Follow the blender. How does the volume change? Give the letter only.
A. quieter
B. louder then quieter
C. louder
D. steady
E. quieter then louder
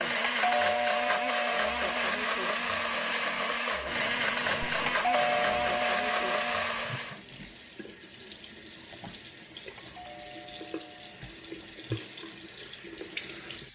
D.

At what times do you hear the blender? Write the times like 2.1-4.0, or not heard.
0.0-7.2.